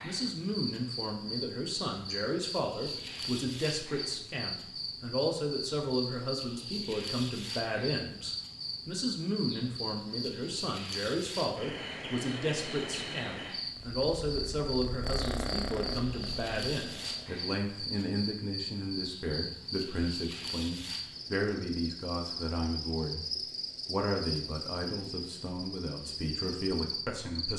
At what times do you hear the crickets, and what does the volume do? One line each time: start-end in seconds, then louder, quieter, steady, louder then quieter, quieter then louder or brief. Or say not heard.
0.0-27.5 steady.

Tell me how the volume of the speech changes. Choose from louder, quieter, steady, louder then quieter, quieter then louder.
steady.